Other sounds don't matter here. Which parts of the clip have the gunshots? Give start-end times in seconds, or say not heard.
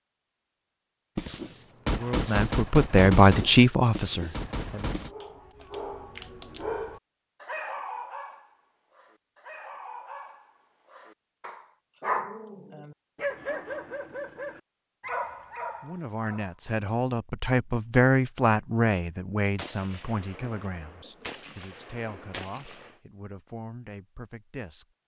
1.1-5.1, 19.6-22.9.